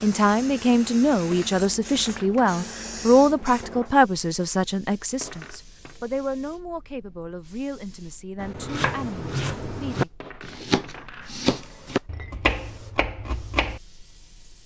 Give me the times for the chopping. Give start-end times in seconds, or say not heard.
8.4-13.8.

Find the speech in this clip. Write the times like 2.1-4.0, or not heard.
0.0-10.1.